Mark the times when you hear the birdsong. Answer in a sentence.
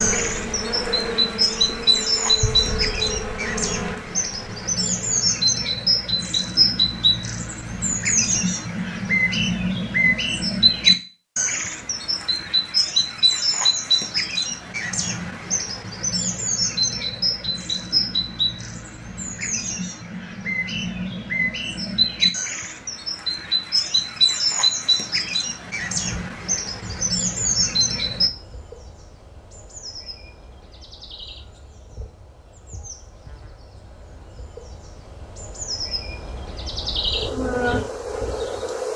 The birdsong can be heard from 0.0 to 28.3 s.